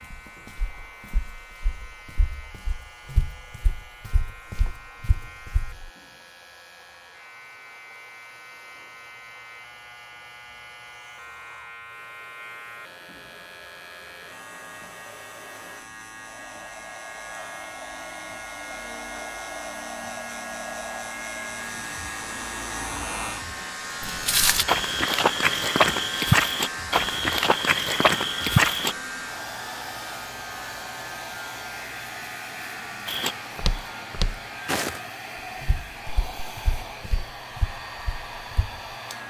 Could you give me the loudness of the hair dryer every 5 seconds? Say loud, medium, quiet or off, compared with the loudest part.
quiet, quiet, quiet, loud, loud, loud, loud, loud.